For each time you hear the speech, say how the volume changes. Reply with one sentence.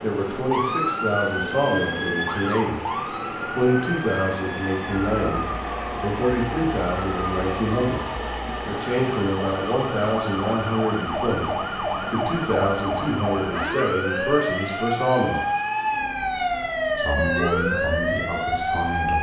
You can hear the speech from 0.0 to 15.4 s, at a steady volume; and briefly from 16.9 to 19.1 s.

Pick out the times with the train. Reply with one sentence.
The train can be heard from 0.0 to 19.1 s.